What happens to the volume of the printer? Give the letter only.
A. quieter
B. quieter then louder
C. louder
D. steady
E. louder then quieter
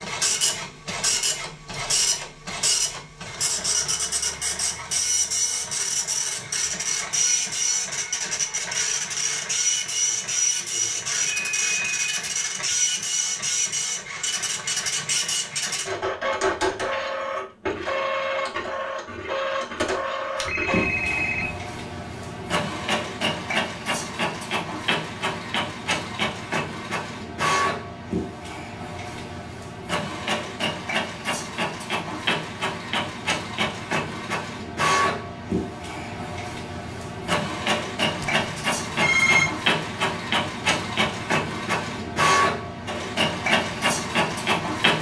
D.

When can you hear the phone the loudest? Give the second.
39 s.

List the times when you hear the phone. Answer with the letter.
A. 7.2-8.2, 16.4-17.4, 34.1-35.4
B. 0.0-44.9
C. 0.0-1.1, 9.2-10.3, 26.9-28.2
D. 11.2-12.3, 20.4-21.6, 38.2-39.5
D.